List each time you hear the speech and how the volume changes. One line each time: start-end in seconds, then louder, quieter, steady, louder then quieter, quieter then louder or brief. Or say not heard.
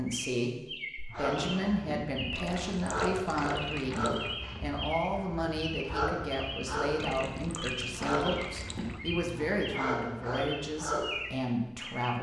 0.0-12.1 steady.